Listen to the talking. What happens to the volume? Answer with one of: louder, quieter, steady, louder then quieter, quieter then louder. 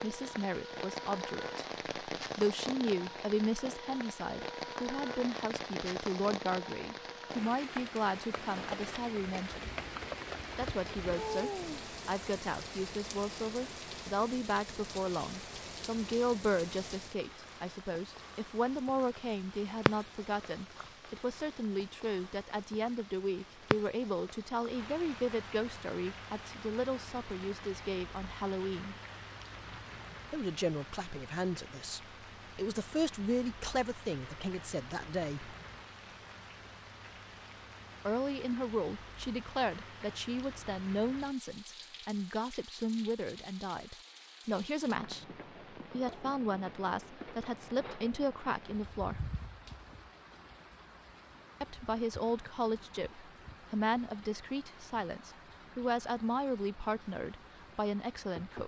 steady.